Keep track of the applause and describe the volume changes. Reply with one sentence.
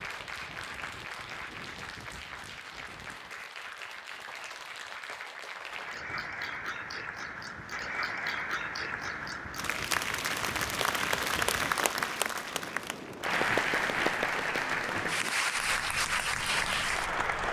The loudness of the applause goes up.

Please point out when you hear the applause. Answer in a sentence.
The applause can be heard from 0.0 to 17.4 s.